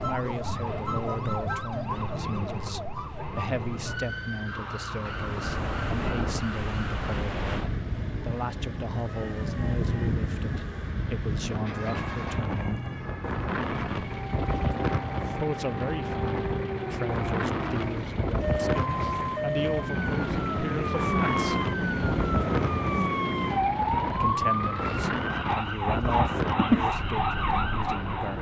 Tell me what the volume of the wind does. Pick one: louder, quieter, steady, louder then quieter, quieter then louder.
steady.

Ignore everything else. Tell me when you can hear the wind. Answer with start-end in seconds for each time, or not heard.
5.0-28.3.